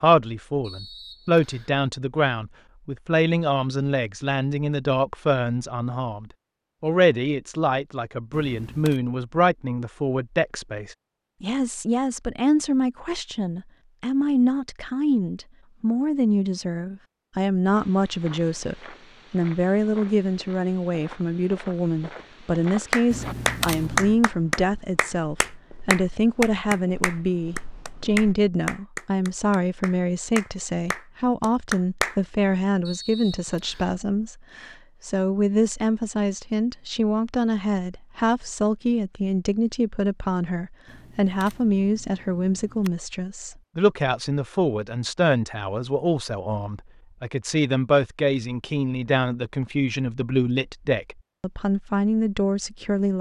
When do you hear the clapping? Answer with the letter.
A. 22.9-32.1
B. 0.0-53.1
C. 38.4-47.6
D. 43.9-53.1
A.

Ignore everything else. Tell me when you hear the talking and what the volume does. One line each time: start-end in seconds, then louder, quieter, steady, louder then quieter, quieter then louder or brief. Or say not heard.
0.0-53.1 steady.